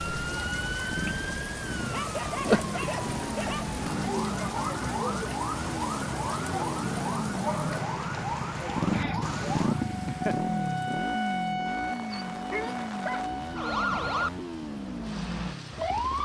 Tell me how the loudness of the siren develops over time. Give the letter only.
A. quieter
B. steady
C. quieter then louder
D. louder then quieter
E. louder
B.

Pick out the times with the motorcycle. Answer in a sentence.
The motorcycle can be heard from 0.1 to 16.2 s.